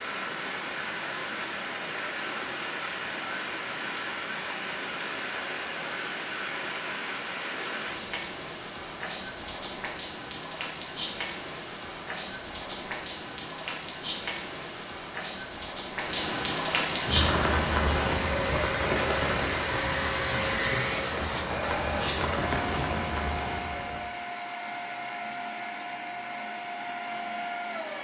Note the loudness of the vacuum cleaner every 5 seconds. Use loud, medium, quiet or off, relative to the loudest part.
off, off, off, loud, loud, loud.